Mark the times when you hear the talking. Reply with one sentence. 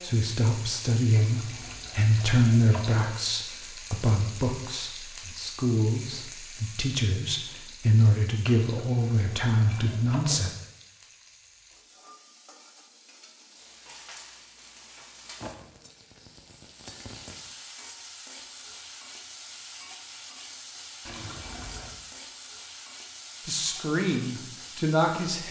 The talking can be heard from 0.0 to 10.5 s and from 23.4 to 25.4 s.